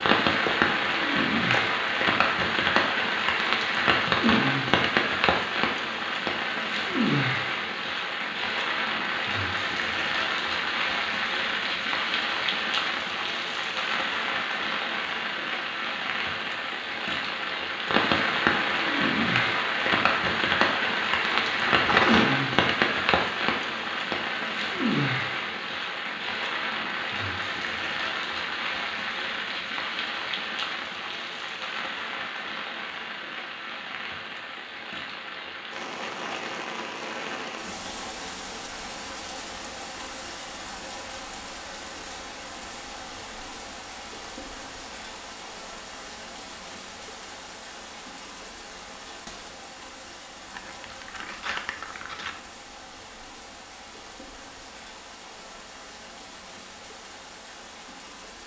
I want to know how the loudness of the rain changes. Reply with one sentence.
The loudness of the rain goes down.